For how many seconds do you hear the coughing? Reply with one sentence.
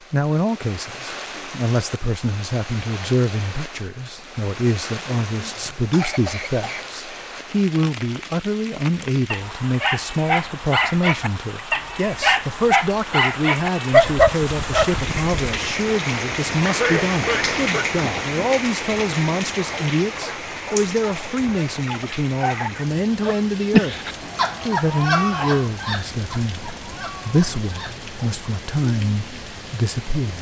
You can hear the coughing for 5 seconds altogether.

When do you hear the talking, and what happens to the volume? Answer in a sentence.
You can hear the talking from 0.1 to 30.3 s, at a steady volume.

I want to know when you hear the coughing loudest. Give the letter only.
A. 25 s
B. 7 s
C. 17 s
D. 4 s
C.